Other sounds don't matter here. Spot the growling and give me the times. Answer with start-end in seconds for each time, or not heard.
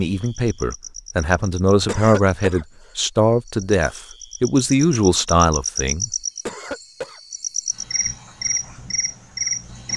not heard.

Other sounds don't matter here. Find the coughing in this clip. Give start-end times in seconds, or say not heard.
1.9-2.6, 6.5-7.2.